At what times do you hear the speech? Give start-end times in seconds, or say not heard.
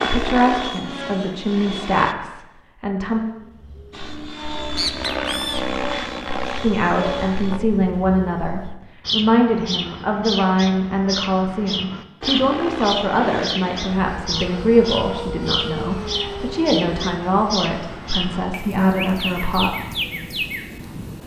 0.0-3.2, 6.6-19.7.